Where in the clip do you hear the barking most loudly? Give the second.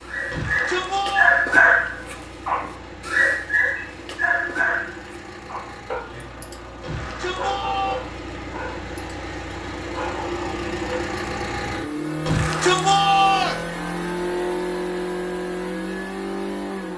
2 s.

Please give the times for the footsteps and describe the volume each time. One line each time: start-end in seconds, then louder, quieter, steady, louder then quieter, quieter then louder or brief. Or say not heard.
not heard.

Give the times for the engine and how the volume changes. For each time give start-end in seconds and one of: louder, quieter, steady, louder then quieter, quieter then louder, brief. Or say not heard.
0.0-16.9 louder.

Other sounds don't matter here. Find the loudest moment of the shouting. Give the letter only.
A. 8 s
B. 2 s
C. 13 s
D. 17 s
C.